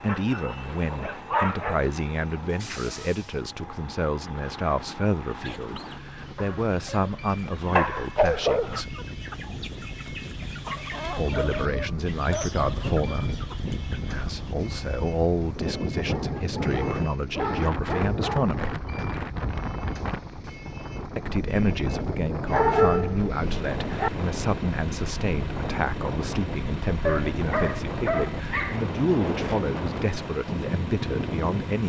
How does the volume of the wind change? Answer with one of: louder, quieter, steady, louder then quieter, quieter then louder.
louder.